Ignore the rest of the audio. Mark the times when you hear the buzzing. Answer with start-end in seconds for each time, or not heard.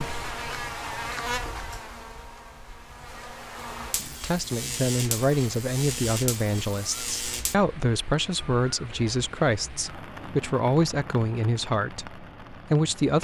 0.0-7.5.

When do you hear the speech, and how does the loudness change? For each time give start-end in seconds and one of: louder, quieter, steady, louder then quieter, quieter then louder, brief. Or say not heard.
4.2-13.1 steady.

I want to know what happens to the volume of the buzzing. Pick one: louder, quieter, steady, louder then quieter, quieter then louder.
quieter then louder.